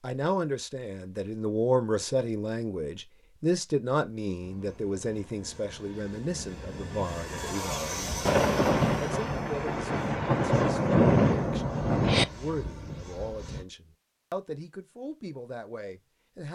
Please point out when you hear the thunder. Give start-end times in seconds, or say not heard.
8.2-12.2.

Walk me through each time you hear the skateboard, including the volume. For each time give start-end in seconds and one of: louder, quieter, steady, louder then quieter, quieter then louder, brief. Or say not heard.
not heard.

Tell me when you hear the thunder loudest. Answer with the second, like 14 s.
11 s.